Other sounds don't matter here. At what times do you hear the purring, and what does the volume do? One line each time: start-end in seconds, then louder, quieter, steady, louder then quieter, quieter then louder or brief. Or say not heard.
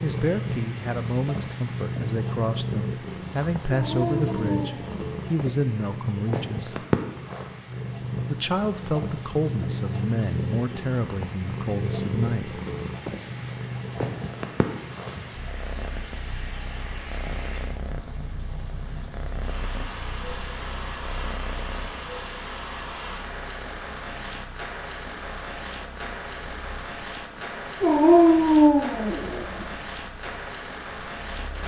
0.0-31.6 quieter.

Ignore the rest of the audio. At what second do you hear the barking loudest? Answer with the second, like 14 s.
28 s.